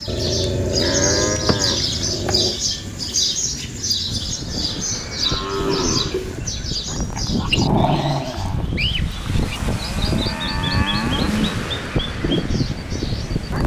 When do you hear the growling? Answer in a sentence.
You can hear the growling from 0.1 to 2.6 s and from 7.2 to 8.7 s.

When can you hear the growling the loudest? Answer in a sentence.
The volume of the growling peaks at 8 seconds.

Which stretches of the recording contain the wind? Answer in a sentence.
The wind can be heard from 4.0 to 13.6 s.